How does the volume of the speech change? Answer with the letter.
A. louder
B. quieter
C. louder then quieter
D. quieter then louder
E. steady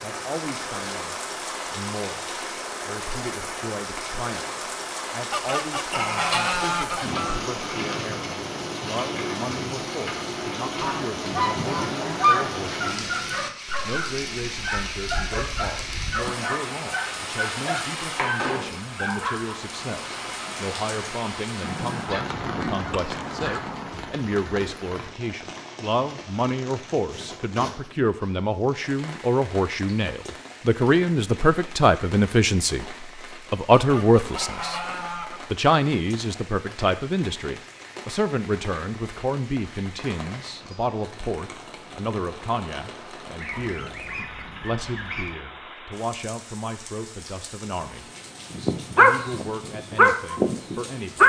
C.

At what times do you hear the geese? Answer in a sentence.
The geese can be heard from 5.3 to 7.4 s, from 10.8 to 12.6 s, from 21.6 to 24.1 s, from 33.8 to 35.5 s and from 43.4 to 45.4 s.